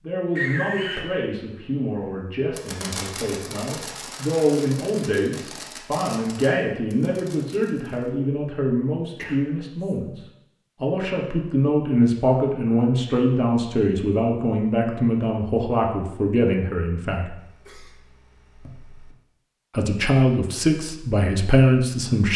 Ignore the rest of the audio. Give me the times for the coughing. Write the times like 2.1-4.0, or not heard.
0.3-1.1, 9.2-9.9, 17.4-19.1.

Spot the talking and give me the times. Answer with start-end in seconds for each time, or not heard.
0.0-10.2, 10.8-17.4, 19.8-22.3.